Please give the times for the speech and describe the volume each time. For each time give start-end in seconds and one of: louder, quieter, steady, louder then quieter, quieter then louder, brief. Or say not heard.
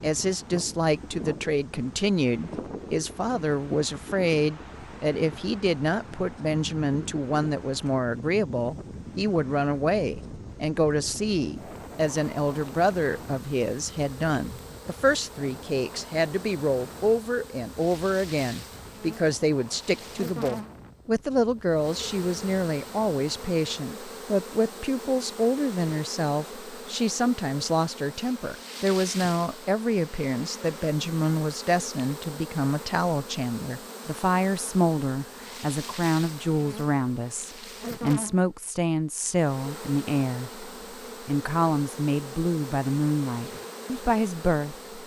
0.0-44.8 steady.